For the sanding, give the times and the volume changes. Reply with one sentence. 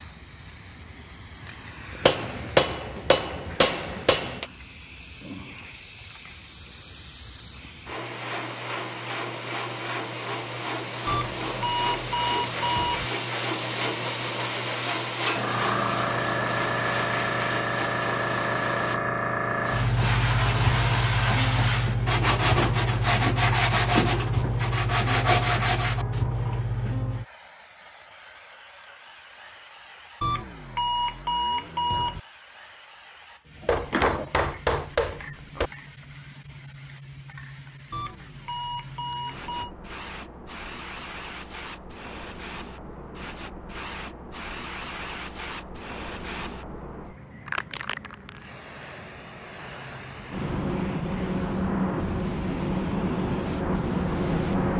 The sanding can be heard from 19.6 to 26.2 s, at a steady volume.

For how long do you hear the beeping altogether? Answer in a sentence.
The beeping can be heard for 6 seconds in total.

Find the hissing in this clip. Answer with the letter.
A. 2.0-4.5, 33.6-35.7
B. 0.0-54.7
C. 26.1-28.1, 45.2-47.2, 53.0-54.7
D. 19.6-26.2
B.